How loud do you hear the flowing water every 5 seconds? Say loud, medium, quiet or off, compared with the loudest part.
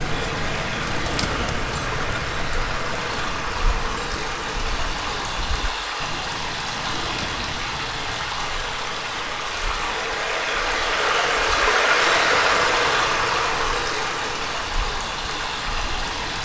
medium, medium, loud, medium.